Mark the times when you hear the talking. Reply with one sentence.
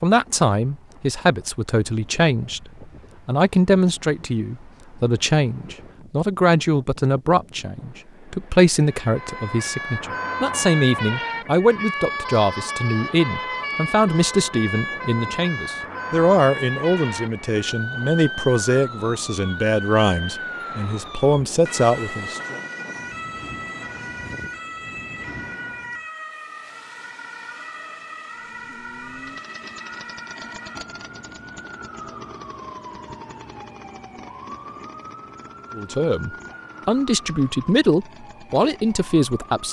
The talking can be heard from 0.0 to 22.6 s and from 35.8 to 39.6 s.